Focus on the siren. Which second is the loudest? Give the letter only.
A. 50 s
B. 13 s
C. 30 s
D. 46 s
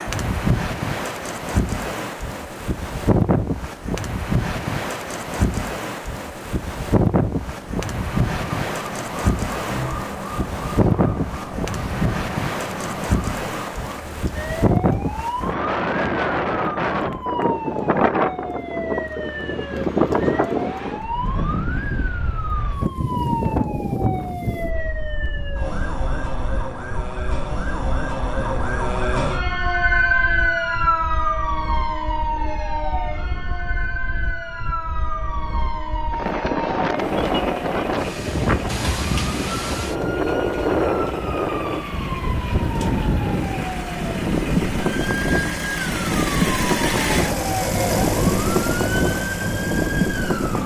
C.